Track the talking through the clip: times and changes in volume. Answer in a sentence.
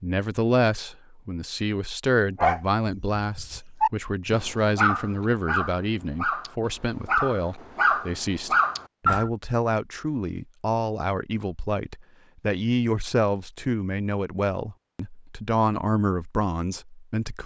The talking can be heard from 0.0 to 17.4 s, at a steady volume.